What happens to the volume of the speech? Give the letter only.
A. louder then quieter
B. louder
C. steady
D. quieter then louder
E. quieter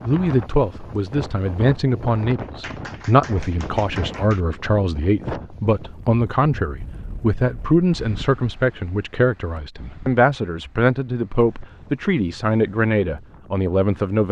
C.